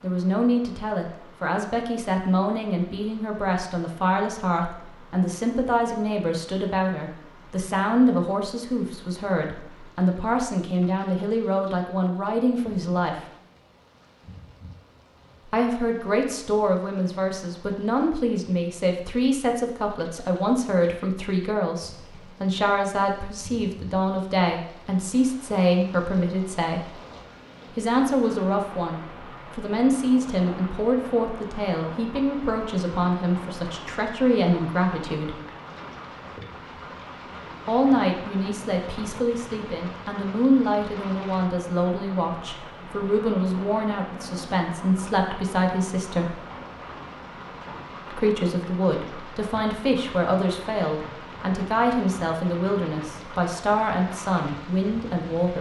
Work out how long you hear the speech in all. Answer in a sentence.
The speech can be heard for 48 seconds in total.